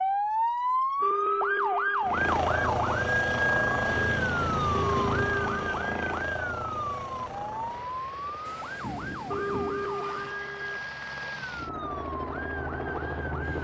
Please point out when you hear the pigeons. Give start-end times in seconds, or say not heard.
not heard.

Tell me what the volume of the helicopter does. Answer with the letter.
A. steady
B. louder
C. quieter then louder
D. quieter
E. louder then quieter
C.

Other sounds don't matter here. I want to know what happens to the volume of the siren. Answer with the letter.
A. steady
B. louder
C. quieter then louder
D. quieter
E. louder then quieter
D.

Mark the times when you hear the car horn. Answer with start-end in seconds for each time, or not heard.
1.0-2.2, 4.7-6.2, 9.2-10.8.